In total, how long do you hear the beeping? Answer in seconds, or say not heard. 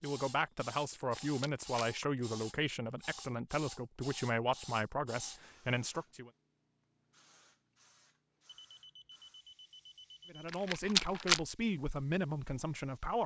2 s.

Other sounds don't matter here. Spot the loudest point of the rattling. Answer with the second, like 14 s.
11 s.